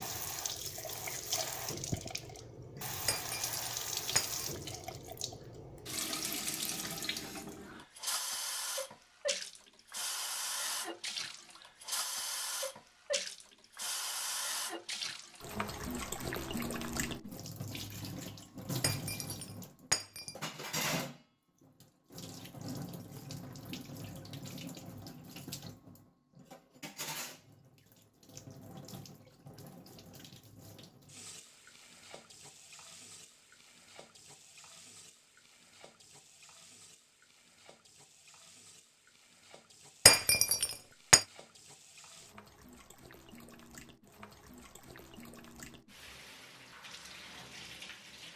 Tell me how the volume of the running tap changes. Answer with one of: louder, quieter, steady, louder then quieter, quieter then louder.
quieter.